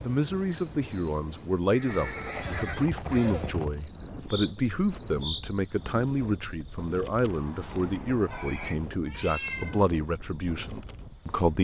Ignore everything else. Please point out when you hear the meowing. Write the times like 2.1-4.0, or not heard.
8.3-9.8.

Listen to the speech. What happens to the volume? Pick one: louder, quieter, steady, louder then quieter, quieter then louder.
steady.